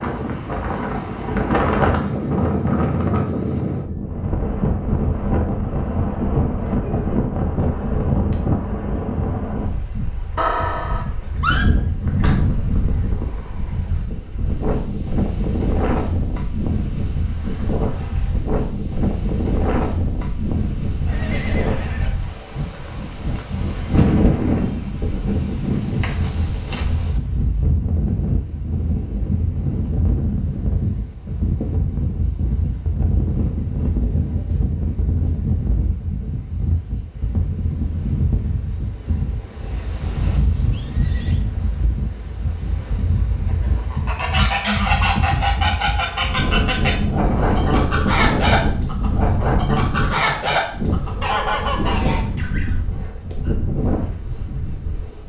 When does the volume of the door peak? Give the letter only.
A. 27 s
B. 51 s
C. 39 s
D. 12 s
D.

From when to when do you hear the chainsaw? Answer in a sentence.
The chainsaw can't be heard in this clip.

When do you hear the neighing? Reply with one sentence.
The neighing can be heard from 10.3 to 11.7 s, from 21.1 to 22.1 s and from 40.2 to 41.5 s.